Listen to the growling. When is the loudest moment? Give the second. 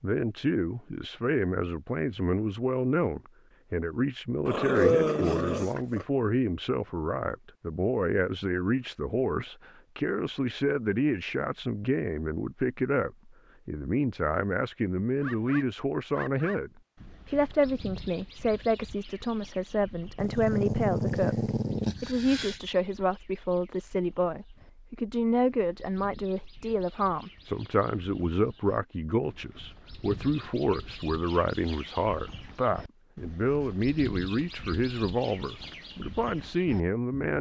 5 s.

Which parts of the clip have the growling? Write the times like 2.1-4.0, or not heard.
4.5-6.0, 20.1-22.6.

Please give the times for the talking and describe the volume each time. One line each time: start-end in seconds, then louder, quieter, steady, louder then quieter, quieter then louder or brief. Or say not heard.
0.0-37.3 steady.